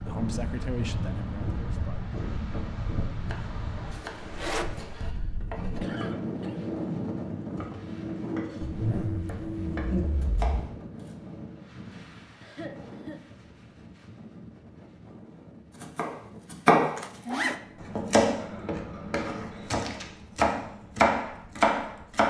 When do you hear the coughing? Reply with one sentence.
You can hear the coughing from 5.6 to 6.7 s and from 12.4 to 13.2 s.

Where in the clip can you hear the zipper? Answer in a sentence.
The zipper can be heard from 4.0 to 4.7 s, from 8.6 to 10.6 s and from 16.9 to 17.6 s.